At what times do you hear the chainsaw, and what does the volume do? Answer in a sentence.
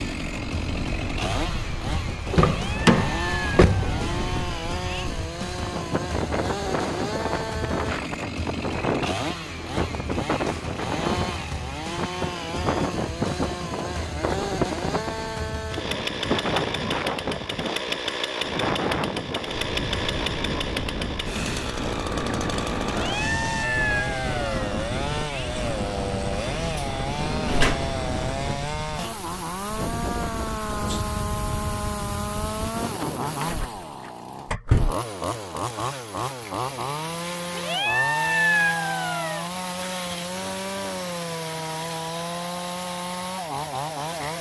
The chainsaw can be heard from 0.0 to 44.3 s, at a steady volume.